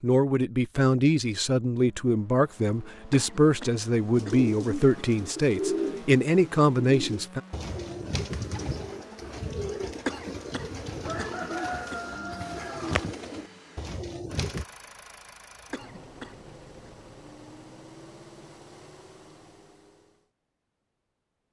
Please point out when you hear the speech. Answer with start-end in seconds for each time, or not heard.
0.0-7.4.